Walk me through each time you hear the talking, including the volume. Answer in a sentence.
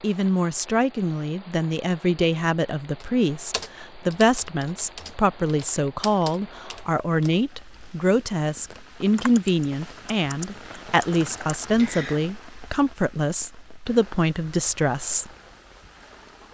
The talking can be heard from 0.0 to 15.3 s, at a steady volume.